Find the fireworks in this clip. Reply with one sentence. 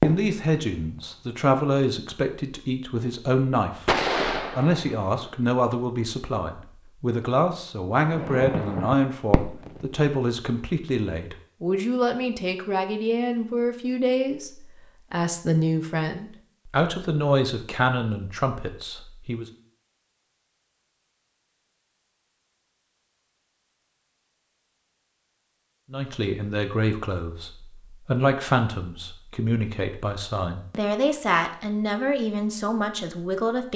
You can hear the fireworks from 0.0 to 1.2 s, from 3.9 to 5.3 s and from 8.0 to 10.0 s.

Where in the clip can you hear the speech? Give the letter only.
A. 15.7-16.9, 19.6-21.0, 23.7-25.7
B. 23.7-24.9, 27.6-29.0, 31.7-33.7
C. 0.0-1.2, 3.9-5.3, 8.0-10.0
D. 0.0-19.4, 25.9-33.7
D.